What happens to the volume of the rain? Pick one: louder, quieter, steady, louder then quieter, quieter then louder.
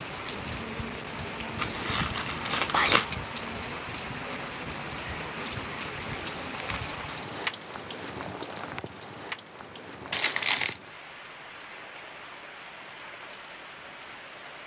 quieter.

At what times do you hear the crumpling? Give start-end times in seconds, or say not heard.
1.6-3.0, 6.1-6.8, 10.1-10.8.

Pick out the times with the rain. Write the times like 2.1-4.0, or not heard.
0.0-14.6.